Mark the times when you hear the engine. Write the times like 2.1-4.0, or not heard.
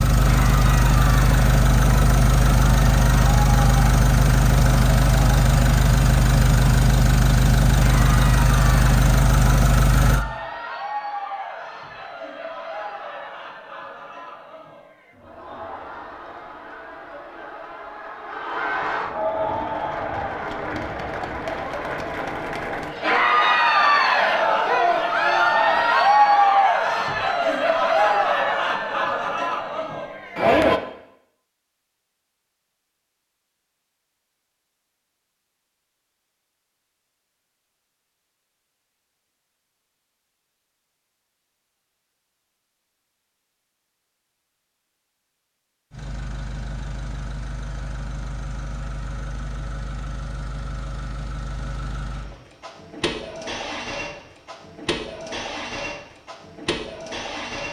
0.0-10.2, 45.9-57.6.